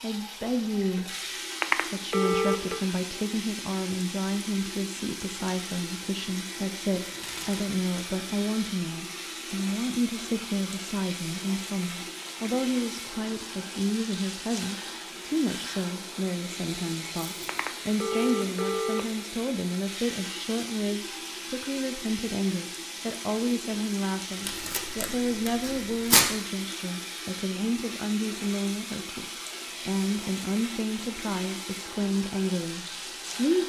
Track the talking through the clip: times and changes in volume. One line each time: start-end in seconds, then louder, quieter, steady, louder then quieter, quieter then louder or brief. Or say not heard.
0.0-1.2 brief
1.9-33.6 steady.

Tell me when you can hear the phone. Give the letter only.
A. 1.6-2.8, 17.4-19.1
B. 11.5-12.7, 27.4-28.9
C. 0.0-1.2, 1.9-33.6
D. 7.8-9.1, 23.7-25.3
A.